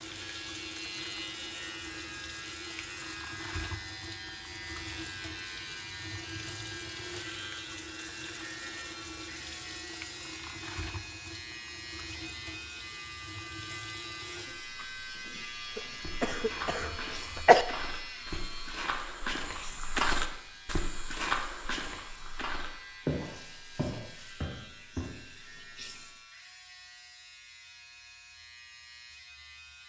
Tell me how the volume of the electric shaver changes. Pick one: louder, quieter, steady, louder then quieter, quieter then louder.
quieter.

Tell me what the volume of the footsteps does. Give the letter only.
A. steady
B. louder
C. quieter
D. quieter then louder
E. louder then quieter
B.